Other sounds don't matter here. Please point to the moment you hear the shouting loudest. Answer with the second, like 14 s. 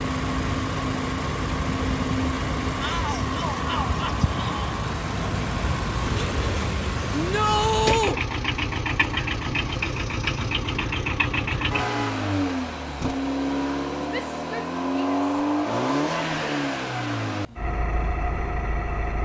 8 s.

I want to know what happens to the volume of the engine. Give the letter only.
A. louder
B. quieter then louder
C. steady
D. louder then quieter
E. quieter
C.